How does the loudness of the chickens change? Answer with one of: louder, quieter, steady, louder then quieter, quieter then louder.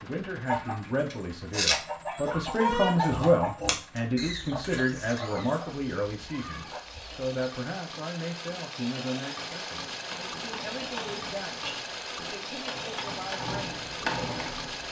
quieter.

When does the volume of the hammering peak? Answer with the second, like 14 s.
14 s.